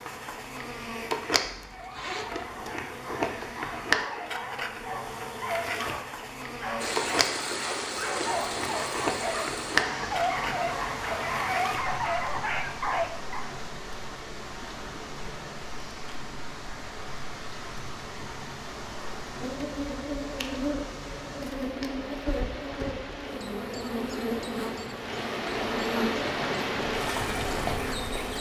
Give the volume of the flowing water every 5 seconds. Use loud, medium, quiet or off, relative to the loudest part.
off, loud, medium, medium, medium, loud.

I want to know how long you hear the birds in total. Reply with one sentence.
The birds can't be heard in this clip.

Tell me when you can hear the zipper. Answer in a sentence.
The zipper can be heard from 1.4 to 2.5 s.